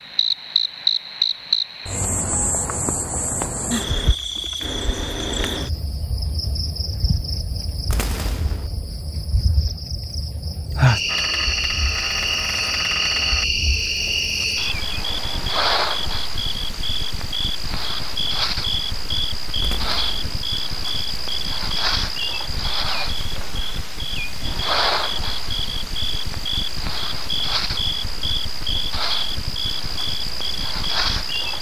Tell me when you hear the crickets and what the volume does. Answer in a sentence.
You can hear the crickets from 0.0 to 31.5 s, at a steady volume.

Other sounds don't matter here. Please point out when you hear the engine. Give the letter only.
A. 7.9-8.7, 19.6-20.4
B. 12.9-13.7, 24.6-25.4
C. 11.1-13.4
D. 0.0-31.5
C.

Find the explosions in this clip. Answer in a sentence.
You can hear the explosions from 7.9 to 8.7 s and from 19.6 to 20.4 s.